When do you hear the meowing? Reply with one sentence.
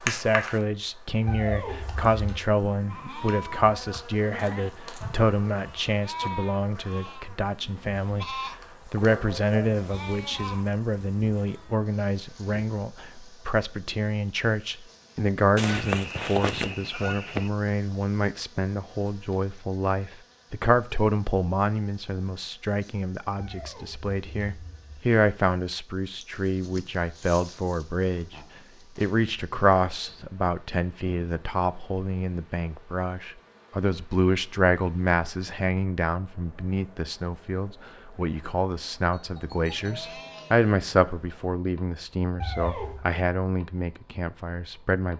The meowing can be heard from 1.2 to 2.4 s, from 23.4 to 25.0 s and from 42.4 to 43.0 s.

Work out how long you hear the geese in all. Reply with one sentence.
You can hear the geese for 2 seconds altogether.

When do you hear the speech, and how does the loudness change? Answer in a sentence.
The speech can be heard from 0.0 to 45.1 s, at a steady volume.